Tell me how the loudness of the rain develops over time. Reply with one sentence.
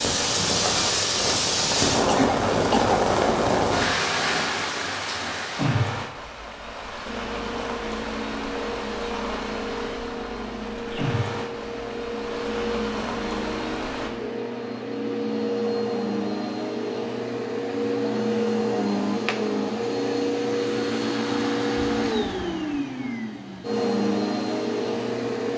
The loudness of the rain goes down.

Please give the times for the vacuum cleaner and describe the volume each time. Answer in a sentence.
The vacuum cleaner can be heard from 7.0 to 25.5 s, getting louder.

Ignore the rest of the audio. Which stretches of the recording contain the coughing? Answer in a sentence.
The coughing can be heard from 2.0 to 3.0 s.